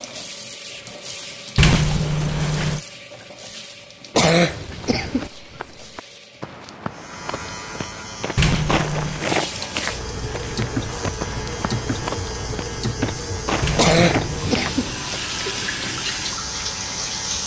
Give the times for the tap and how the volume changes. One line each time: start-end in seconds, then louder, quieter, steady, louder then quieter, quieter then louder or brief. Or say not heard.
0.0-6.8 quieter
9.1-17.4 steady.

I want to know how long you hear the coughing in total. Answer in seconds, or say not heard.
2 s.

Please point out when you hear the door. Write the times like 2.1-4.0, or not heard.
1.6-2.8, 8.3-9.2, 13.6-14.6.